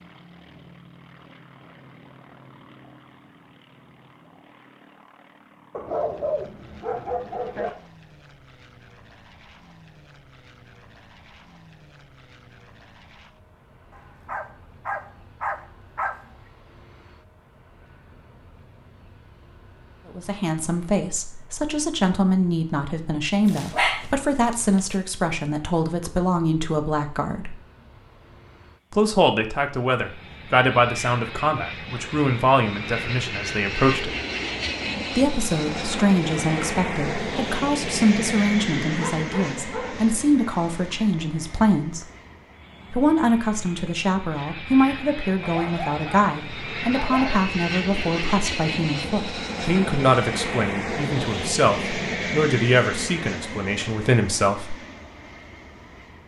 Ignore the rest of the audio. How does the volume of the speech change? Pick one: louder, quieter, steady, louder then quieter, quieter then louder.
steady.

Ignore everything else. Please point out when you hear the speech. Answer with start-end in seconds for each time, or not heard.
20.1-27.6, 28.9-34.1, 35.1-42.0, 42.9-54.8.